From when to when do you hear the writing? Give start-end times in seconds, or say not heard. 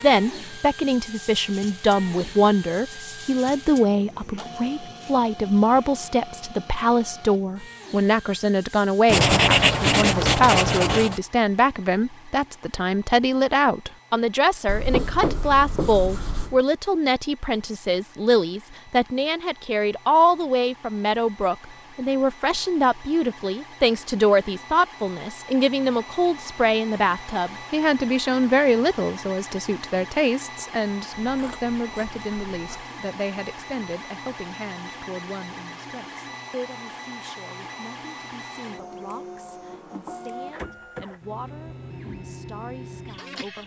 9.1-11.2, 14.7-16.6, 31.1-32.9.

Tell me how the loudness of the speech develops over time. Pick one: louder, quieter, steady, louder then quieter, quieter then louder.
quieter.